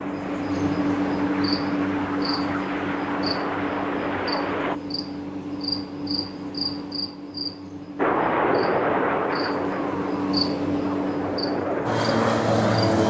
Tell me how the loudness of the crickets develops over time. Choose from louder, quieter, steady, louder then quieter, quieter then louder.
quieter then louder.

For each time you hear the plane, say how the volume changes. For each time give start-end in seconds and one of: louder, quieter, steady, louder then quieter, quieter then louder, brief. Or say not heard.
0.0-4.8 louder
8.0-13.0 quieter then louder.